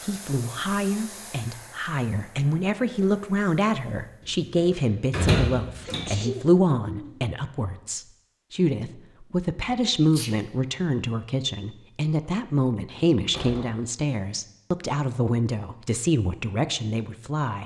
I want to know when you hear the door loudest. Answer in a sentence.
The volume of the door peaks at 5 seconds.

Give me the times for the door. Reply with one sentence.
You can hear the door from 4.5 to 6.1 s and from 13.2 to 13.8 s.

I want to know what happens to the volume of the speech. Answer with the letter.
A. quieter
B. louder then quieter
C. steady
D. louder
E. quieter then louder
C.